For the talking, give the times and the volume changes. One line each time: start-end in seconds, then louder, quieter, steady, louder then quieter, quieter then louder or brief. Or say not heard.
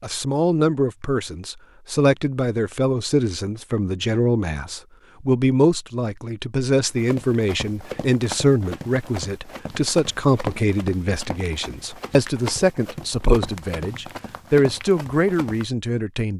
0.0-16.3 steady.